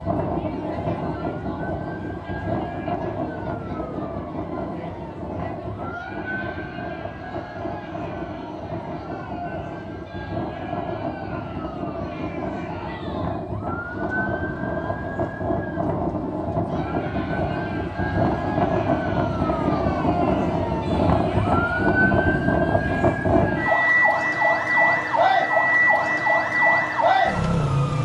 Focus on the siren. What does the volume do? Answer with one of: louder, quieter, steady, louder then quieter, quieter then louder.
louder.